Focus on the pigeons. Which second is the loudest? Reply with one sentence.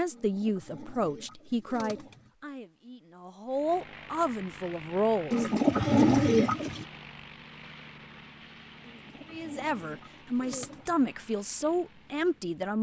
The loudest moment of the pigeons is at 6 seconds.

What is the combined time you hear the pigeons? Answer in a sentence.
You can hear the pigeons for 6 seconds altogether.